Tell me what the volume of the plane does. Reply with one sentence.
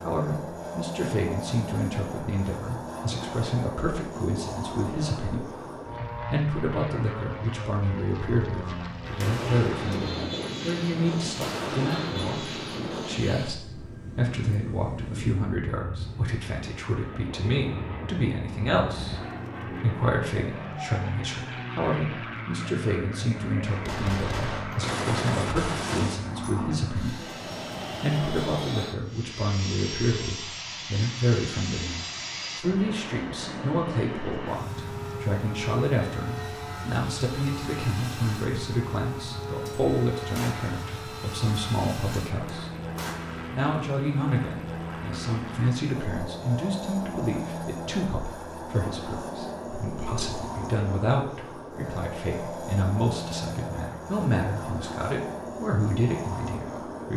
The volume of the plane stays about the same.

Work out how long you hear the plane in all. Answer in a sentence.
The plane can be heard for 57 seconds in total.